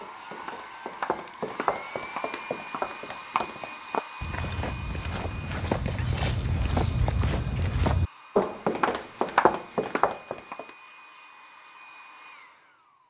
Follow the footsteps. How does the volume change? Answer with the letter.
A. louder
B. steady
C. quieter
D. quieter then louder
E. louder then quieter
A.